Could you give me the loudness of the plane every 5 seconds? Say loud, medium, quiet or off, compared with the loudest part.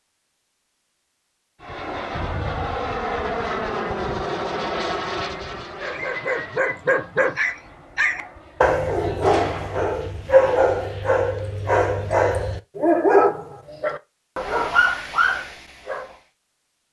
loud, medium, quiet, off.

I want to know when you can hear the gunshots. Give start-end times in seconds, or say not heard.
9.2-9.9.